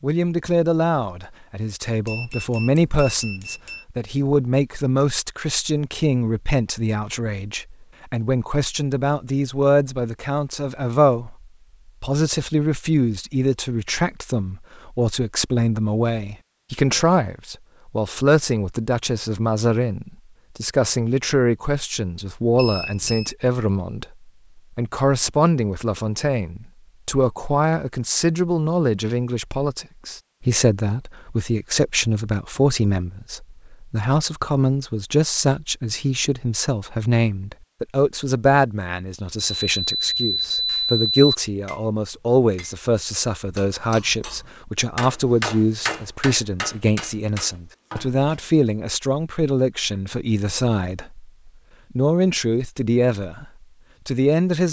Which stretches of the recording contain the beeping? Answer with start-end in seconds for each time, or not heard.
2.0-3.9, 22.6-23.4, 39.4-41.1.